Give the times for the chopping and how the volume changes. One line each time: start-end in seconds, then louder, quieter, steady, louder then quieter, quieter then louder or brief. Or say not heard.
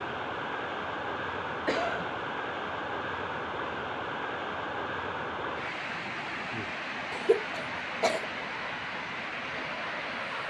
not heard.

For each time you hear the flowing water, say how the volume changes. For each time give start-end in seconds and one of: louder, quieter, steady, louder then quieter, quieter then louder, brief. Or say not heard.
0.0-10.4 steady.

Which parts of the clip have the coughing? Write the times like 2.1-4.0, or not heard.
1.6-2.1, 7.1-8.2.